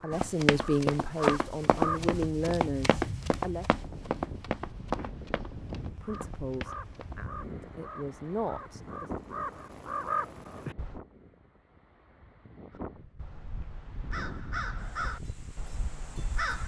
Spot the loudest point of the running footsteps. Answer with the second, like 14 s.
1 s.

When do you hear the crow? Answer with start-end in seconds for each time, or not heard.
0.0-2.2, 6.0-11.0, 12.7-16.6.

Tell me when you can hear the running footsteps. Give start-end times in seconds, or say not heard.
0.1-7.2.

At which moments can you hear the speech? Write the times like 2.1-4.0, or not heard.
0.0-3.6, 6.0-9.1.